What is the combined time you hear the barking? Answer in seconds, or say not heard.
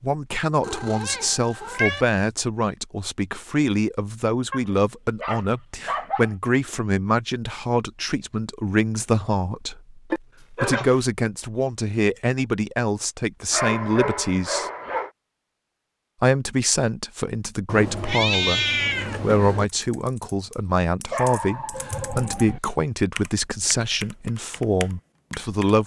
5 s.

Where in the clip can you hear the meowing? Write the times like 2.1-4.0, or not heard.
0.6-2.0, 10.1-11.0, 17.6-19.6.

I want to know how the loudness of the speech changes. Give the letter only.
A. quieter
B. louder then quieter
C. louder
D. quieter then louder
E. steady
E.